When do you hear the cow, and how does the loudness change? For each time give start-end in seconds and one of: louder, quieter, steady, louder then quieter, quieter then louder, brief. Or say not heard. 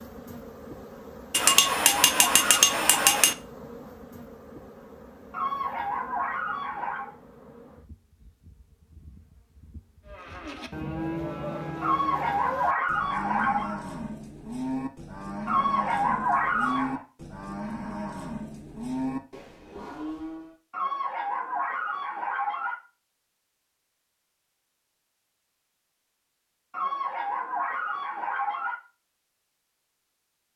10.1-20.6 steady.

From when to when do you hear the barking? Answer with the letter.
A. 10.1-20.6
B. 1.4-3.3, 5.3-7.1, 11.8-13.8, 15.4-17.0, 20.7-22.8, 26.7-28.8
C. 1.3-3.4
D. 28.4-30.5
B.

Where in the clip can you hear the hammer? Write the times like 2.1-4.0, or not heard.
1.3-3.4.